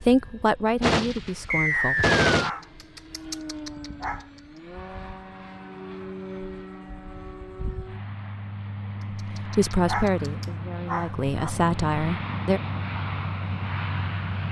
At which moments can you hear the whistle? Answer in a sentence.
You can hear the whistle from 1.5 to 2.6 s.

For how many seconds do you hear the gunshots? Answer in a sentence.
You can hear the gunshots for 2 seconds altogether.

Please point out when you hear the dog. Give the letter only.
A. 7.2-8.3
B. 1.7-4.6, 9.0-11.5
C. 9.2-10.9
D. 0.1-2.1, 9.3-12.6
B.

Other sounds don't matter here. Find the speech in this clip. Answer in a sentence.
The speech can be heard from 0.1 to 2.1 s and from 9.3 to 12.6 s.